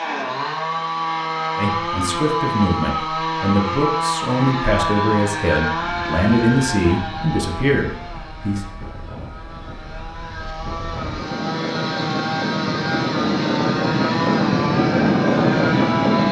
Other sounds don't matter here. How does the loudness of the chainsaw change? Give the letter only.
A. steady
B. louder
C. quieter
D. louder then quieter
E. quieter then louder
E.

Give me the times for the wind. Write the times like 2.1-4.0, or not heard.
5.8-16.2.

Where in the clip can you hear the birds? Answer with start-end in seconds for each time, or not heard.
not heard.